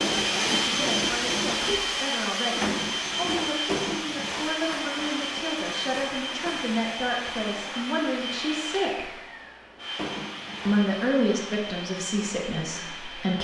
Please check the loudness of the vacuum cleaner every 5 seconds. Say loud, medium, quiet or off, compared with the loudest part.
loud, medium, medium.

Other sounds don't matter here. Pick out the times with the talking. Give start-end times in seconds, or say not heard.
0.2-9.1, 10.7-13.3.